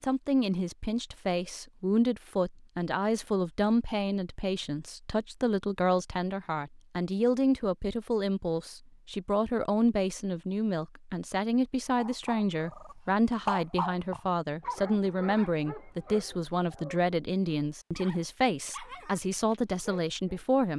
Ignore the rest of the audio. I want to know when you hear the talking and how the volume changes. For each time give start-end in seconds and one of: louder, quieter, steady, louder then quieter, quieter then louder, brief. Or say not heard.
0.0-20.7 steady.